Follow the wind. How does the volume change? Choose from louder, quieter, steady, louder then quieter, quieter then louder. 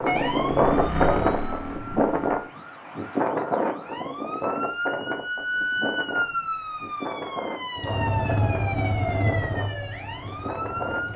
quieter.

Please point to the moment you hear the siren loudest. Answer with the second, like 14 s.
6 s.